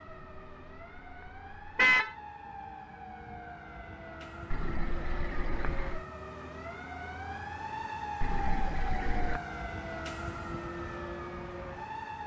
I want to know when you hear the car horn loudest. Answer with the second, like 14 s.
2 s.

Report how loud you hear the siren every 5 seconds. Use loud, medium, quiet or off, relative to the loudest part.
medium, loud, loud.